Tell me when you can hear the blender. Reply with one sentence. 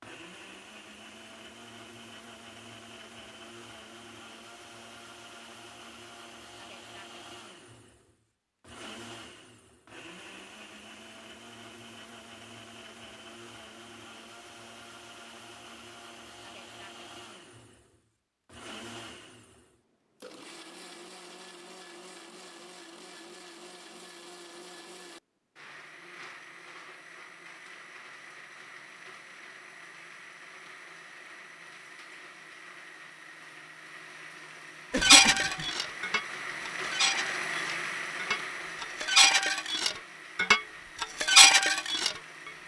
You can hear the blender from 0.0 to 42.6 s.